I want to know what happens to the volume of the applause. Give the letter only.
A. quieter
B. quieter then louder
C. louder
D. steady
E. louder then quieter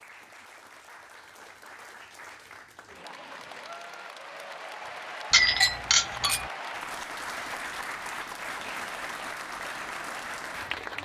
C.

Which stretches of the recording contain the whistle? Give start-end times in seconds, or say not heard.
not heard.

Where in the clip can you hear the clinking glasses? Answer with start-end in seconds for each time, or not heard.
5.3-6.5.